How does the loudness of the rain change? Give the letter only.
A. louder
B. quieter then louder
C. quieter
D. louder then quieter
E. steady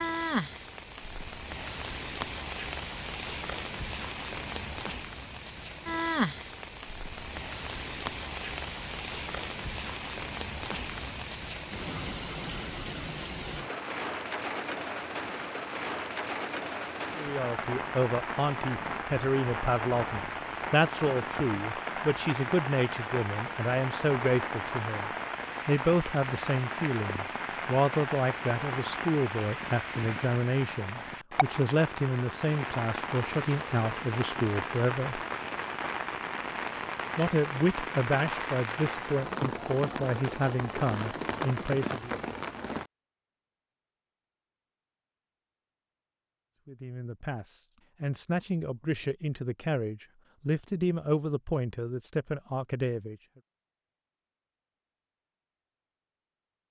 E.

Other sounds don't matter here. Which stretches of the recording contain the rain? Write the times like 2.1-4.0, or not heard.
0.0-42.9.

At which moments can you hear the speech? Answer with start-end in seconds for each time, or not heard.
17.1-35.2, 37.1-42.1, 46.6-53.2.